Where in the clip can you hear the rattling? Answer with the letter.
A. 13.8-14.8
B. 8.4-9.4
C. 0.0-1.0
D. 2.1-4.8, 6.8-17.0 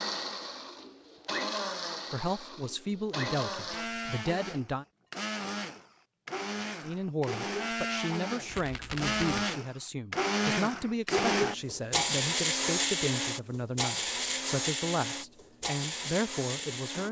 B.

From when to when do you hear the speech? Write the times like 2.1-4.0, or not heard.
2.1-4.8, 6.8-17.0.